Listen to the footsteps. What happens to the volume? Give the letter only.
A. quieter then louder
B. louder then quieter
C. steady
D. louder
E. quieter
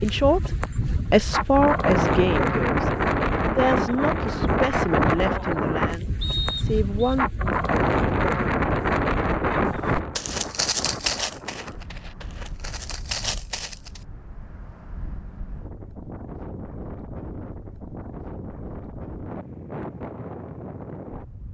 A.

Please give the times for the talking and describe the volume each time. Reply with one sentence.
You can hear the talking from 0.0 to 7.3 s, getting quieter.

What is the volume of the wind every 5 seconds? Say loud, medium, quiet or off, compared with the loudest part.
loud, loud, quiet, quiet, quiet.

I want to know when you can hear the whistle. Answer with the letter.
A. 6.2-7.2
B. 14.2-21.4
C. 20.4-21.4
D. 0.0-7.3
A.